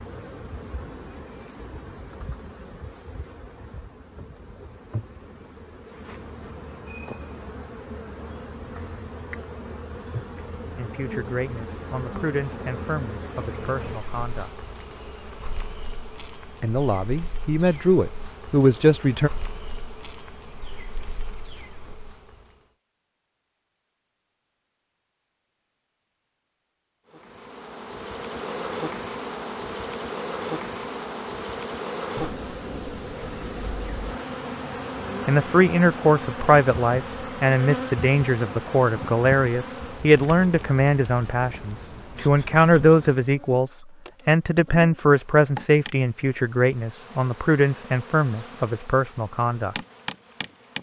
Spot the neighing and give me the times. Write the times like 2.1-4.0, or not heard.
not heard.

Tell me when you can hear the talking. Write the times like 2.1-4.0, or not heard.
10.8-14.5, 16.6-19.3, 35.2-49.8.